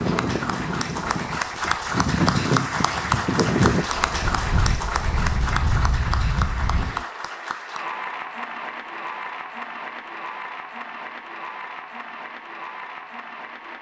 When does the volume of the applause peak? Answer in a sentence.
The loudest moment of the applause is at 3 seconds.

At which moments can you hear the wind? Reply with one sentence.
You can hear the wind from 0.0 to 7.0 s.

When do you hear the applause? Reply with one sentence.
You can hear the applause from 0.0 to 13.7 s.